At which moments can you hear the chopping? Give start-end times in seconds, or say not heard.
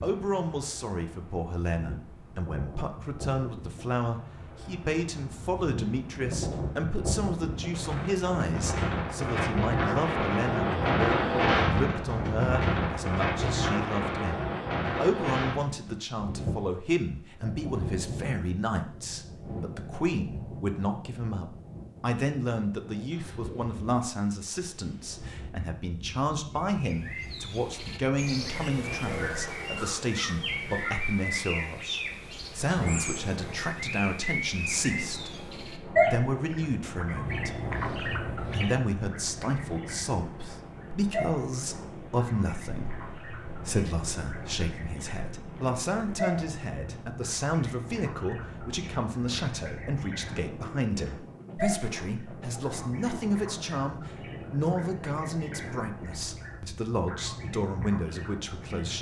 not heard.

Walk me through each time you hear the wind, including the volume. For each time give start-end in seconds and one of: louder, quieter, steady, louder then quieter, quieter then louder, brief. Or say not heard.
0.0-58.9 quieter.